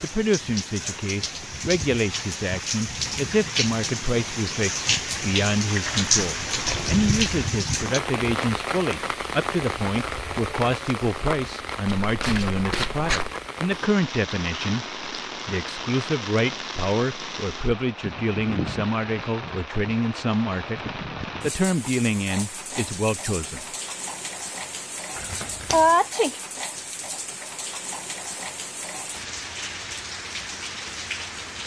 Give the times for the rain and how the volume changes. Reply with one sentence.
The rain can be heard from 0.0 to 31.6 s, getting quieter.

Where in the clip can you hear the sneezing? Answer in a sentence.
You can hear the sneezing from 25.7 to 26.4 s.